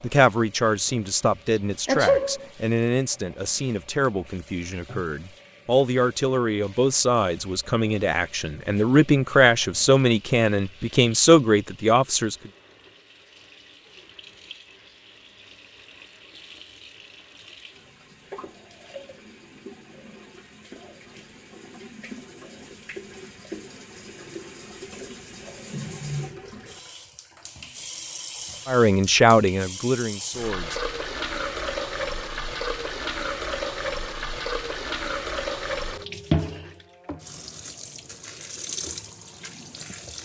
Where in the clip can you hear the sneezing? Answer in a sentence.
You can hear the sneezing from 1.9 to 2.5 s.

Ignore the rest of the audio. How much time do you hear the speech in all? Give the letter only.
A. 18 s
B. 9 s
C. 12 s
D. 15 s
D.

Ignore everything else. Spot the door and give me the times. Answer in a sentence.
You can't hear the door here.